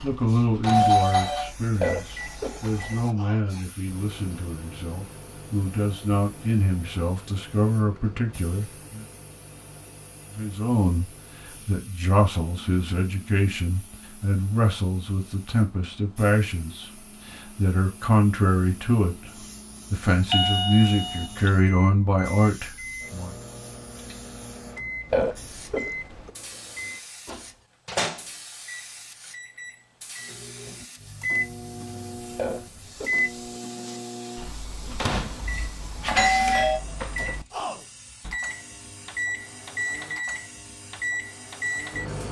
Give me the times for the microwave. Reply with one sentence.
The microwave can be heard from 0.0 to 42.2 s.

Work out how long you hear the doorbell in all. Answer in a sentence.
The doorbell can be heard for 4 seconds in total.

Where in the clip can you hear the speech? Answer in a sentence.
You can hear the speech from 0.0 to 9.1 s, from 10.3 to 11.1 s, from 11.7 to 19.3 s and from 19.9 to 23.4 s.